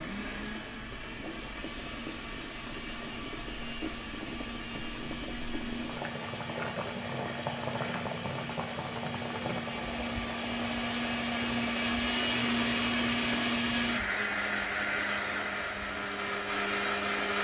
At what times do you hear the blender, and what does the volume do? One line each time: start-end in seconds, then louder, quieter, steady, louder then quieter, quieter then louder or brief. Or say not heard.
0.0-17.3 louder.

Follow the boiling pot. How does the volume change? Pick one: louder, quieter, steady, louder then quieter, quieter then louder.
louder then quieter.